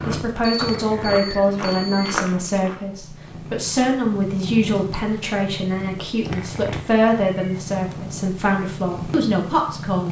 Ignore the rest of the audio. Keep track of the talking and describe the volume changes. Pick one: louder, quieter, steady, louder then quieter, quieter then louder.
steady.